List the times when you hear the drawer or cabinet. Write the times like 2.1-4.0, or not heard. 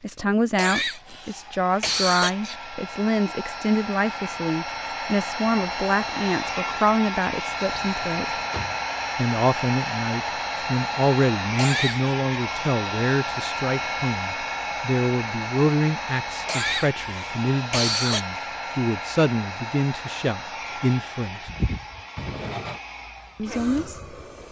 7.7-8.8, 22.1-22.8.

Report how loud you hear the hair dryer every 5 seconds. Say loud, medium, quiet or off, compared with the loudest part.
medium, loud, loud, loud, medium.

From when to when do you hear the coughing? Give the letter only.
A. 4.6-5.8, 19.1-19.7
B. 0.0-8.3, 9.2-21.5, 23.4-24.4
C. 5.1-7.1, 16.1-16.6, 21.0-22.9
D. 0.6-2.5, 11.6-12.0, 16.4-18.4
D.